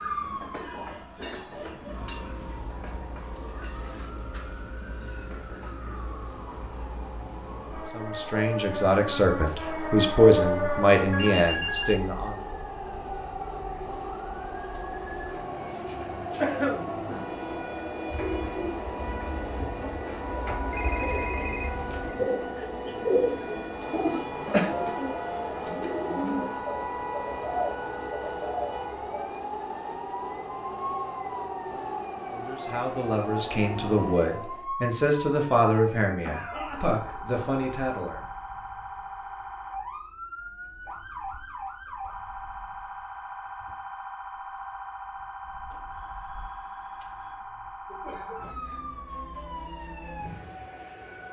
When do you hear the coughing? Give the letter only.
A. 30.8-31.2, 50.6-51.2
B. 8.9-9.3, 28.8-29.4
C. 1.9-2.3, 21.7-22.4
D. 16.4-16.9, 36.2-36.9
D.